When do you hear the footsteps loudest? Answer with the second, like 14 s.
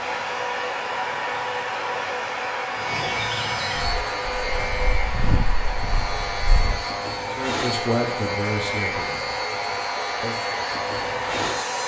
5 s.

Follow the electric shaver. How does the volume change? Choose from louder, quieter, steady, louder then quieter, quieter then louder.
louder.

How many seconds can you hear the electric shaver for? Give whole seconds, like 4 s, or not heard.
12 s.